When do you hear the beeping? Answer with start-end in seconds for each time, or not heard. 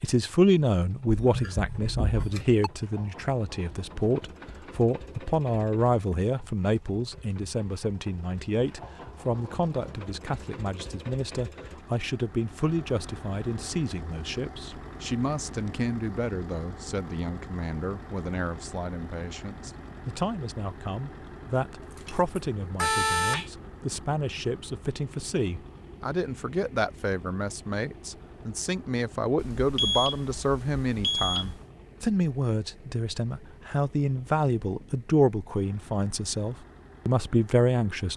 1.2-2.7, 21.9-23.5, 29.4-31.6.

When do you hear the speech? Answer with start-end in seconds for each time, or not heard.
0.0-38.1.